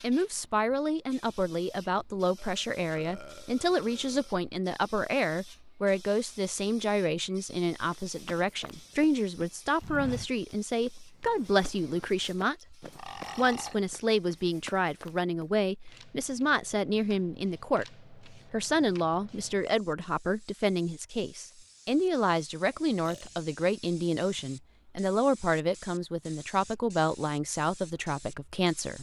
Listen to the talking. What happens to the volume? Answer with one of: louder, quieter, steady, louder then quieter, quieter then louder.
steady.